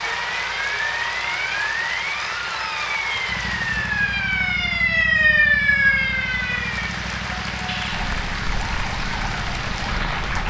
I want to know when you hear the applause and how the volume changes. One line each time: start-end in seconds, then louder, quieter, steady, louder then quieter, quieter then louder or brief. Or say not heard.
0.0-10.4 quieter then louder.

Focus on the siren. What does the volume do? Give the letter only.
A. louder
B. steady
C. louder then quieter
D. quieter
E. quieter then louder
C.